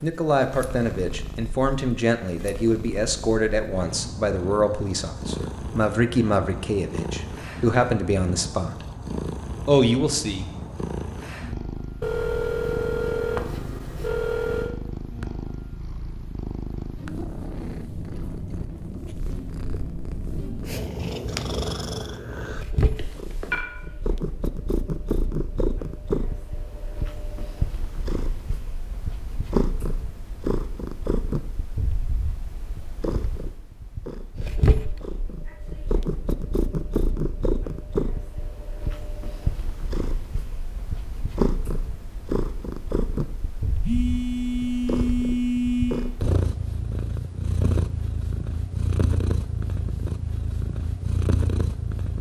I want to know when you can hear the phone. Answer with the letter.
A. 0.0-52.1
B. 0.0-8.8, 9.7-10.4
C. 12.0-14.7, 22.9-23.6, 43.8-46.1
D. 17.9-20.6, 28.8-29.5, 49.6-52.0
C.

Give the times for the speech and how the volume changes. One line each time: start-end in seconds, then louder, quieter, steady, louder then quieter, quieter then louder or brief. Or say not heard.
0.0-8.8 steady
9.7-10.4 brief.